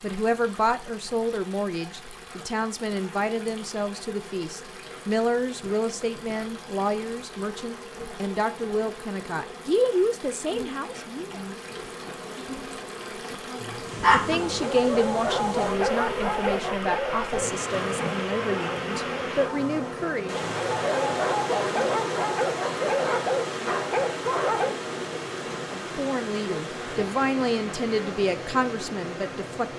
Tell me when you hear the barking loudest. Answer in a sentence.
The loudest moment of the barking is at 14 seconds.